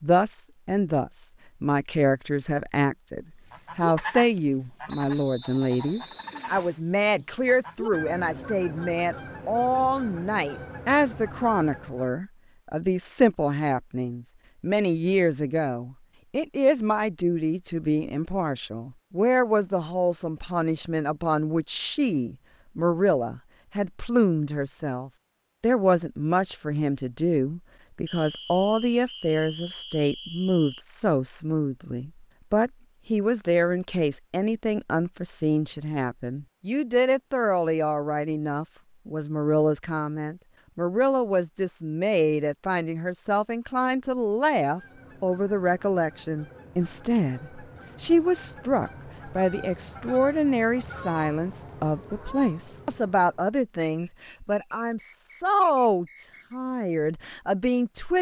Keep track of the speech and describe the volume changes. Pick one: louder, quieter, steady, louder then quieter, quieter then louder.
steady.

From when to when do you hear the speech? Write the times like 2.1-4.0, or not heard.
0.0-58.1.